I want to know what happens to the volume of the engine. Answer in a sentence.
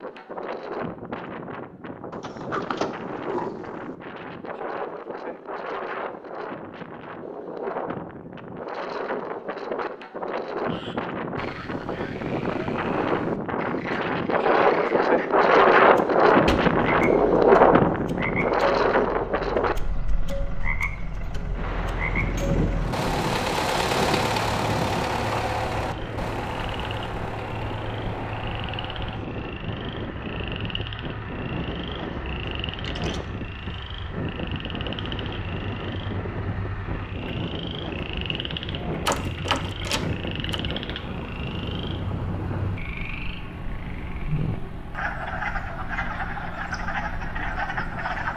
The volume of the engine goes down.